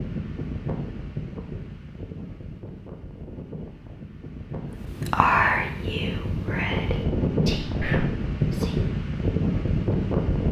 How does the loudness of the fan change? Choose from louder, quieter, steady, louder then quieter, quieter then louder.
quieter then louder.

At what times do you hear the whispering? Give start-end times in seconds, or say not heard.
4.8-8.8.